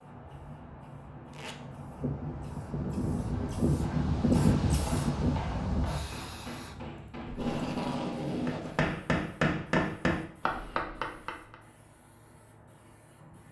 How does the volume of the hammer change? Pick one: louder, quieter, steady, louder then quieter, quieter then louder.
louder.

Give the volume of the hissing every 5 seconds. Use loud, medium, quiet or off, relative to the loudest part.
loud, medium, quiet.